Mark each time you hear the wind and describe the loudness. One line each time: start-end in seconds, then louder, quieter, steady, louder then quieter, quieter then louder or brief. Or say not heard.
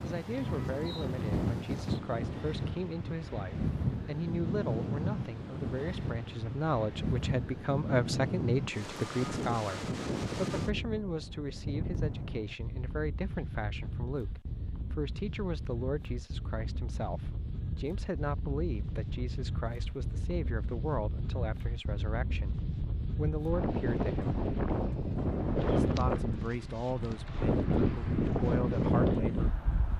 0.0-29.9 quieter then louder.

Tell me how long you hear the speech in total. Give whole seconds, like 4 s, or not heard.
28 s.